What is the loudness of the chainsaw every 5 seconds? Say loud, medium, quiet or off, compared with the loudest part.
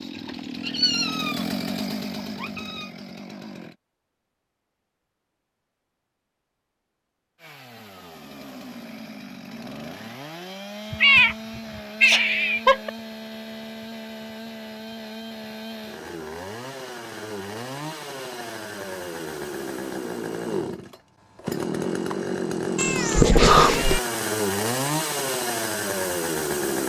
medium, quiet, medium, medium, loud, loud.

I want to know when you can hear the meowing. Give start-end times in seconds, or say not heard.
0.1-1.4, 2.1-2.9, 10.9-12.9, 22.8-24.0.